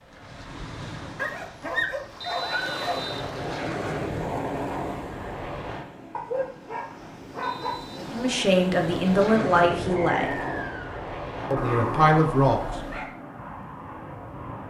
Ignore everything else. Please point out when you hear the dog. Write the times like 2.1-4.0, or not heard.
1.1-3.0, 6.1-7.8, 11.6-13.2.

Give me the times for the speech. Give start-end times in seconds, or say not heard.
8.0-10.4, 11.5-12.6.